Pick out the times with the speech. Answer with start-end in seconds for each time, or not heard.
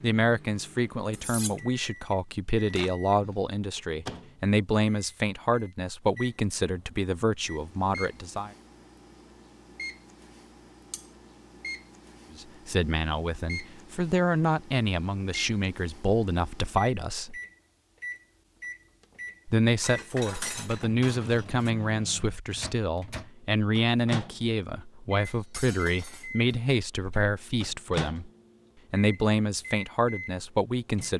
0.0-8.5, 12.3-17.4, 19.4-28.3, 28.9-31.1.